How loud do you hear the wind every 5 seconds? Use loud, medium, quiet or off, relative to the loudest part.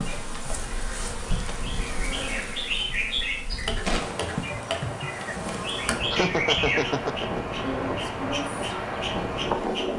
medium, loud.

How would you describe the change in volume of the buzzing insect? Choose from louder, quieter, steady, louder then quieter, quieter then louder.
steady.